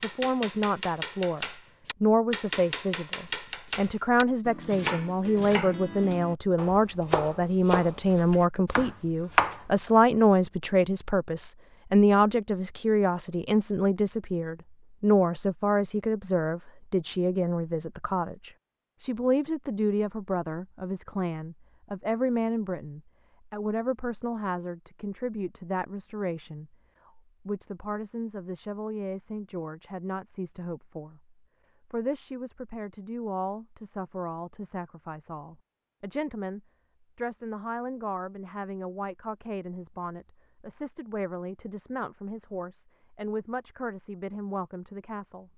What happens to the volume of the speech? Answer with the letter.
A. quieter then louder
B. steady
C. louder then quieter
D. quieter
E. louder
D.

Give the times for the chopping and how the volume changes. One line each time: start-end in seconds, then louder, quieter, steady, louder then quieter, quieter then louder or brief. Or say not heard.
0.0-9.6 steady.